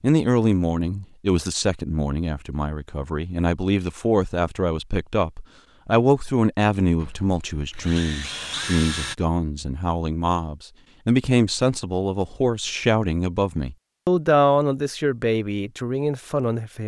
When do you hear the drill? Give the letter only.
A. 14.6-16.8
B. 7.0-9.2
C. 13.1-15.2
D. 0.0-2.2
B.